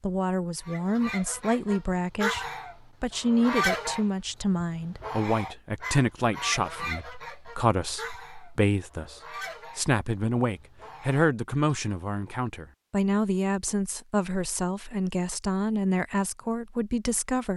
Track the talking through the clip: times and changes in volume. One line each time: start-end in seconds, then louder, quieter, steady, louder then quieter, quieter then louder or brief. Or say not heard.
0.0-17.5 steady.